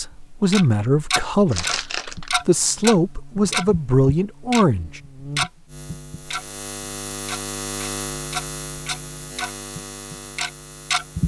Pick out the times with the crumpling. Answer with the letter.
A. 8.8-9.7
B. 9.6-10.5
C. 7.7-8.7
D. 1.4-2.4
D.